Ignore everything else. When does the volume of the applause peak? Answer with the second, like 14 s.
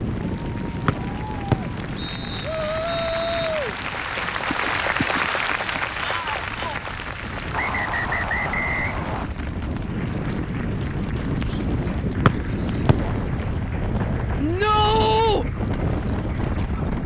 5 s.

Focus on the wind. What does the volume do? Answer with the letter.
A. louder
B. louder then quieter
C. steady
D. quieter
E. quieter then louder
E.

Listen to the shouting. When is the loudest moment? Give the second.
15 s.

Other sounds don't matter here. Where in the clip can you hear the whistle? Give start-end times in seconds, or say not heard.
0.8-3.5, 7.5-9.2, 12.2-12.9.